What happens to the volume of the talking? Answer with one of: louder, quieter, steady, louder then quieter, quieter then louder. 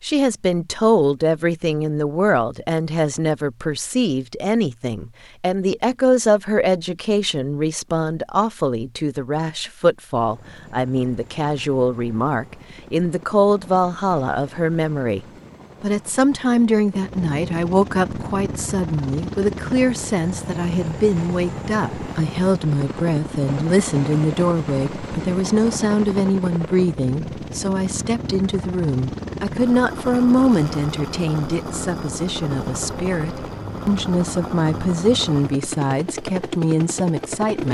steady.